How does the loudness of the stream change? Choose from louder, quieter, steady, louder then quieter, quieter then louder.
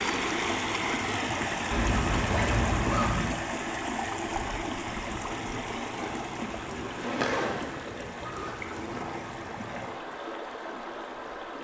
quieter.